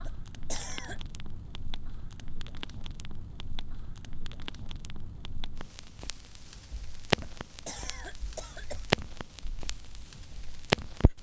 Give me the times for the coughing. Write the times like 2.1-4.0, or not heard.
0.1-1.0, 7.2-8.8.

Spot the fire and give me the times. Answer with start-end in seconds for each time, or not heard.
0.0-11.1.